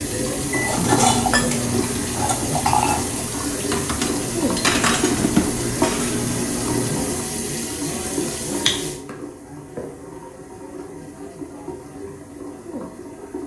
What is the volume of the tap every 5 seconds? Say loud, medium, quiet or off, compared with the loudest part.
loud, loud, medium.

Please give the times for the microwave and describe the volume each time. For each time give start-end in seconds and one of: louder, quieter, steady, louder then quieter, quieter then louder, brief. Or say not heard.
0.0-7.2 quieter then louder.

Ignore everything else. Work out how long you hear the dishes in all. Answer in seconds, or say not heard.
6 s.